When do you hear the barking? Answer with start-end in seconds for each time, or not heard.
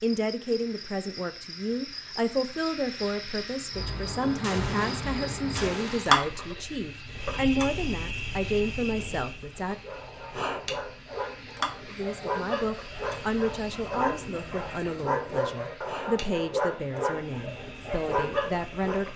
9.8-19.1.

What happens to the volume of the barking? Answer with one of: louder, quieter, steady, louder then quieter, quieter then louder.
louder.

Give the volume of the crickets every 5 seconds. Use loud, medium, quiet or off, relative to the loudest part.
medium, loud, medium, quiet.